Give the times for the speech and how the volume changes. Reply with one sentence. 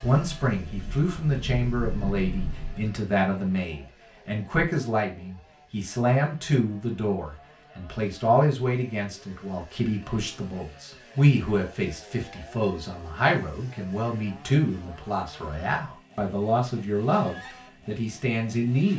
The speech can be heard from 0.0 to 18.9 s, at a steady volume.